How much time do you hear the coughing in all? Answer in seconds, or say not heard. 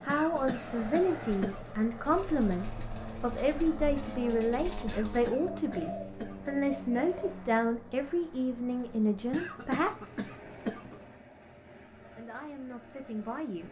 5 s.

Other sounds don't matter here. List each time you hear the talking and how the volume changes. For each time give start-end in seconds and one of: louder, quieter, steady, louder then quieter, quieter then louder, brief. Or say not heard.
0.0-9.9 steady
11.9-13.6 brief.